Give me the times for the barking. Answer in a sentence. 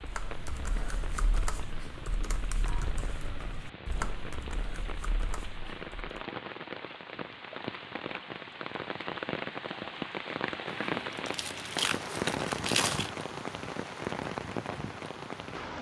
The barking can't be heard in this clip.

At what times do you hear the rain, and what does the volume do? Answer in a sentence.
The rain can be heard from 0.0 to 15.7 s, getting louder.